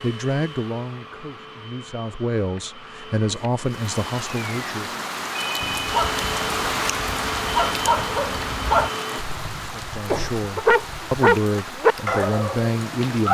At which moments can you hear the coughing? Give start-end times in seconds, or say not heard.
9.2-11.2.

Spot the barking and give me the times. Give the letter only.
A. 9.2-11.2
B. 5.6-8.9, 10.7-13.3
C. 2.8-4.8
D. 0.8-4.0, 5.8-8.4
B.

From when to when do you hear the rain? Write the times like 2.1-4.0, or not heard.
3.6-13.3.